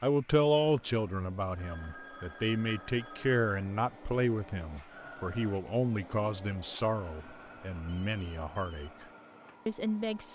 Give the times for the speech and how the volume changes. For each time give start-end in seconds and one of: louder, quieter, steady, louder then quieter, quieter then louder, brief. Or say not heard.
0.0-9.1 quieter
9.7-10.3 brief.